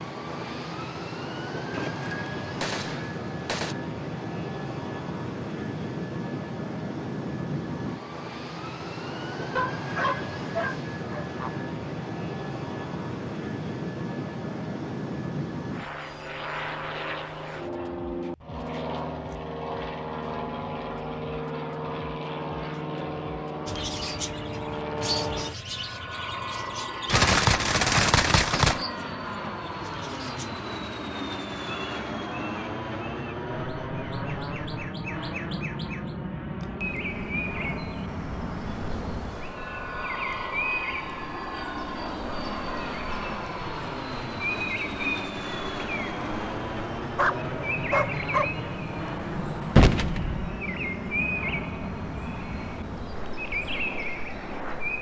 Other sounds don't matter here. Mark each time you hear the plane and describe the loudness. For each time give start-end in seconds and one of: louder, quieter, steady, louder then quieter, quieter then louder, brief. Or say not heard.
0.0-54.9 steady.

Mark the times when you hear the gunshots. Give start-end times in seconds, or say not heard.
1.7-3.8, 27.1-28.9, 49.8-50.4.